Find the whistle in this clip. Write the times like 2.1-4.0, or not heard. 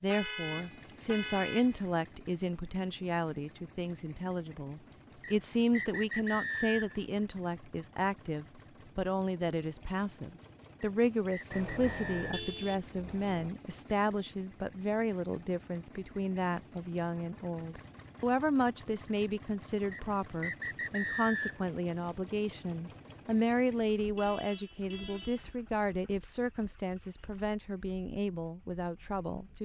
5.2-7.0, 10.8-12.3, 19.9-21.6.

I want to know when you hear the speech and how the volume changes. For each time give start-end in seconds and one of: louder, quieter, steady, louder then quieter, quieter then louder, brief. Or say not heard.
0.0-29.6 steady.